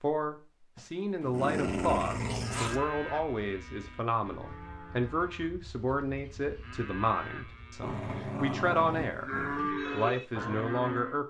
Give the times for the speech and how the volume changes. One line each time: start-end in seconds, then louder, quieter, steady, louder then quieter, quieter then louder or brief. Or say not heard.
0.0-9.3 steady
9.9-11.2 brief.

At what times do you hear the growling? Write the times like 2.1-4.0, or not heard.
0.8-2.8, 7.8-9.7.